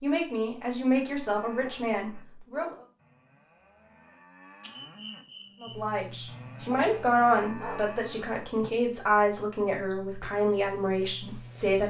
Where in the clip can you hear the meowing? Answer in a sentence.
The meowing can't be heard in this clip.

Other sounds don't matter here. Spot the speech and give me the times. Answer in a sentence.
The speech can be heard from 0.0 to 2.8 s and from 5.6 to 11.8 s.